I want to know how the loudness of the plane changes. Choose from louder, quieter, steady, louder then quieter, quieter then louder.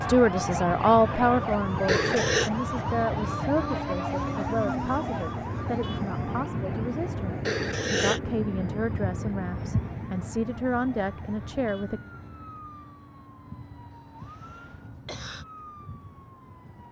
quieter.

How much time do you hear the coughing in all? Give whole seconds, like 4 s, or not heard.
3 s.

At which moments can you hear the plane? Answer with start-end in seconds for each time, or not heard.
0.0-16.8.